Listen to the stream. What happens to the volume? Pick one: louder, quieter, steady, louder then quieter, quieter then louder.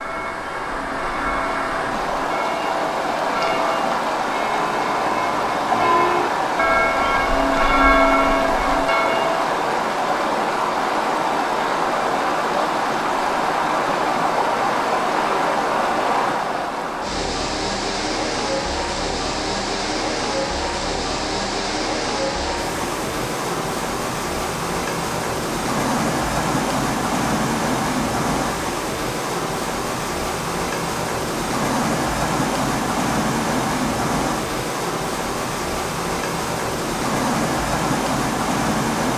steady.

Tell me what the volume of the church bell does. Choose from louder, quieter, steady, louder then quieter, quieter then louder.
louder.